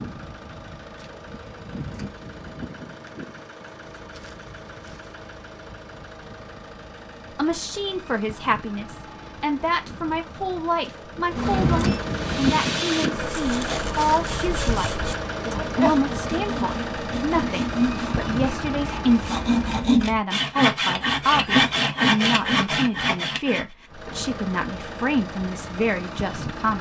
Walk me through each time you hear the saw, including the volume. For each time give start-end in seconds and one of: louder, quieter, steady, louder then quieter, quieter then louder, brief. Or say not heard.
12.1-23.6 louder.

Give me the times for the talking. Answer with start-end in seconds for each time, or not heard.
7.3-26.7.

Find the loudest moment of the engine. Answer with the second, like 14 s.
12 s.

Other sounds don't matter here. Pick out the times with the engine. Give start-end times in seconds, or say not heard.
0.0-19.9, 23.9-26.7.